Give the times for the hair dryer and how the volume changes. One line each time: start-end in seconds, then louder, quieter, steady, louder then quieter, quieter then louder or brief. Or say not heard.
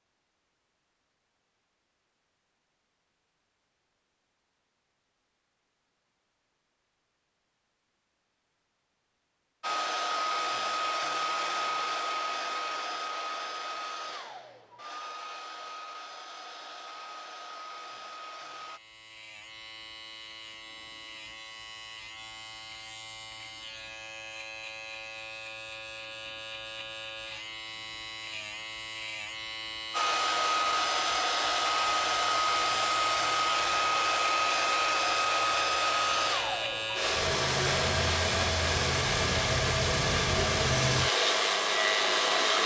9.6-18.8 quieter
29.9-42.6 steady.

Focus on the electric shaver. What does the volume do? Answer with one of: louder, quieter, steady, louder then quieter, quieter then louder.
louder.